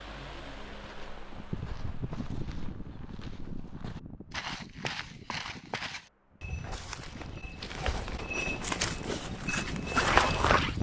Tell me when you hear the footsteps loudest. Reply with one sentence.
The volume of the footsteps peaks at 10 seconds.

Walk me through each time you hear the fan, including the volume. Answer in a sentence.
You can hear the fan from 0.0 to 10.7 s, getting quieter then louder.